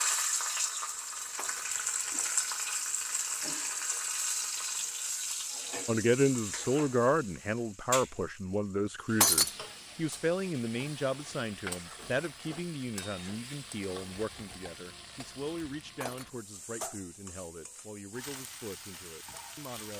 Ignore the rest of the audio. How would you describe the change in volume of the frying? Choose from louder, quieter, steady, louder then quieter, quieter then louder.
quieter.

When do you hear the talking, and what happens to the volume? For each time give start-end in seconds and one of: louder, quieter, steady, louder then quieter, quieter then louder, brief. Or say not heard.
5.8-19.9 quieter.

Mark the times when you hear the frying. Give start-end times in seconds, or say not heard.
0.0-19.9.